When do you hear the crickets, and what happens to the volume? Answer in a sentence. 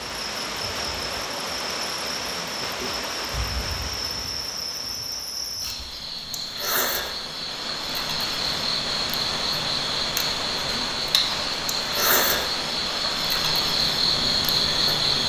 You can hear the crickets from 0.0 to 15.2 s, getting louder.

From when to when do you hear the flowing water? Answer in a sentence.
You can hear the flowing water from 0.0 to 15.2 s.